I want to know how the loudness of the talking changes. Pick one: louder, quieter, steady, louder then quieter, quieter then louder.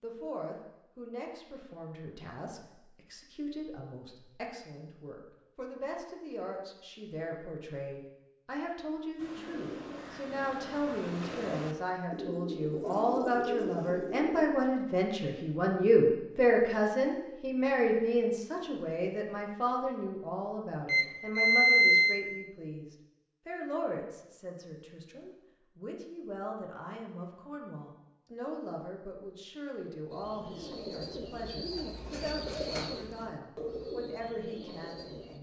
louder then quieter.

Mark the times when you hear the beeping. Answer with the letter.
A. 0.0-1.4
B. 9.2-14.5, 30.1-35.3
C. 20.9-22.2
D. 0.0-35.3
C.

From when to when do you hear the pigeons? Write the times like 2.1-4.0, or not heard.
9.2-14.5, 30.1-35.3.